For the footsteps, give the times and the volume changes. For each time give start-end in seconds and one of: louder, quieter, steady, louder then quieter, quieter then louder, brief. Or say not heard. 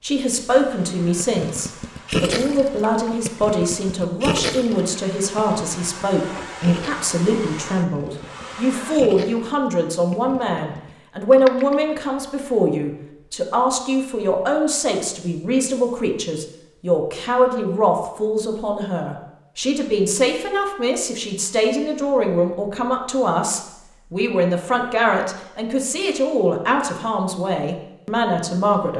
not heard.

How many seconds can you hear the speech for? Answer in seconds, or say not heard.
29 s.